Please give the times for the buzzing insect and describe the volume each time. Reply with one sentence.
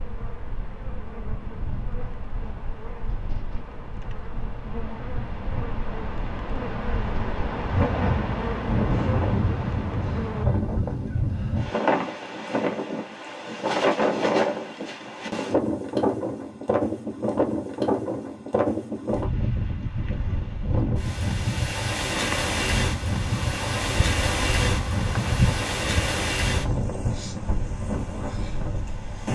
You can hear the buzzing insect from 0.0 to 10.4 s, getting louder; and from 22.1 to 26.3 s, getting louder.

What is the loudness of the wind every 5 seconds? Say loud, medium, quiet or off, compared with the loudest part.
quiet, loud, loud, loud, loud, loud.